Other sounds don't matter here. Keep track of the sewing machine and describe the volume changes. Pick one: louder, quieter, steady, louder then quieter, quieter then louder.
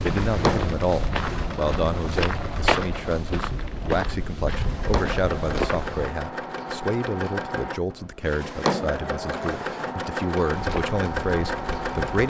louder.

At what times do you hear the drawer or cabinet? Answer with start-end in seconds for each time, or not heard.
0.1-1.4, 4.5-6.2, 8.2-9.9.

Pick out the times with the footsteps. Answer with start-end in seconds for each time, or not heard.
0.0-6.1, 10.5-11.9.